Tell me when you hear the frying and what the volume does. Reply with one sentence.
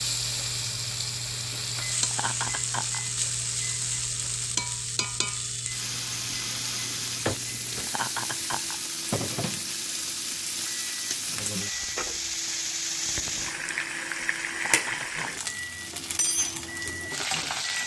You can hear the frying from 0.0 to 17.8 s, at a steady volume.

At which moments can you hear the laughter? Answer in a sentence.
You can hear the laughter from 2.1 to 3.0 s, from 7.8 to 8.8 s and from 14.6 to 15.5 s.